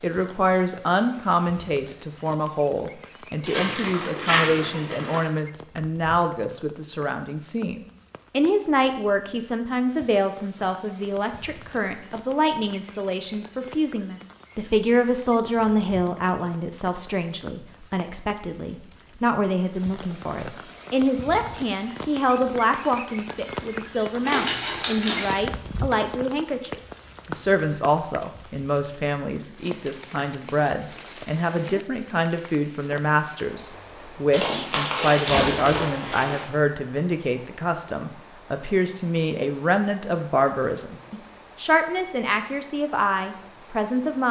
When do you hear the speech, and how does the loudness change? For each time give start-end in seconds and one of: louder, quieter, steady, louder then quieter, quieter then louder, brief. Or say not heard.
0.0-44.2 steady.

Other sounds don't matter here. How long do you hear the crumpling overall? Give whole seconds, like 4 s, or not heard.
5 s.